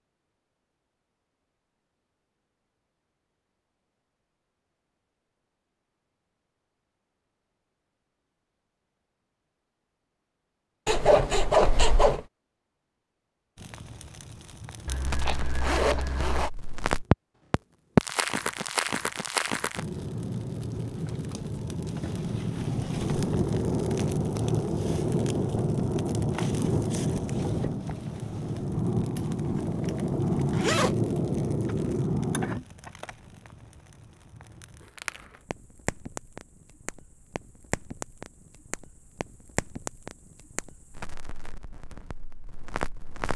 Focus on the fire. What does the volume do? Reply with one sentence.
The volume of the fire goes down.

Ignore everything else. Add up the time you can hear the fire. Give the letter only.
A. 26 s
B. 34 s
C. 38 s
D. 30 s
D.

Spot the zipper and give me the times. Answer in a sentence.
You can hear the zipper from 10.8 to 12.2 s, from 14.8 to 16.5 s and from 29.1 to 31.1 s.